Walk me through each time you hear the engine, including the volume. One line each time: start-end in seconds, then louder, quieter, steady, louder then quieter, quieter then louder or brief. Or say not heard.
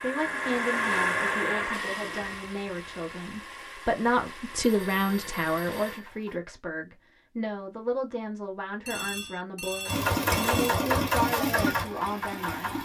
0.0-6.4 quieter
9.8-12.8 brief.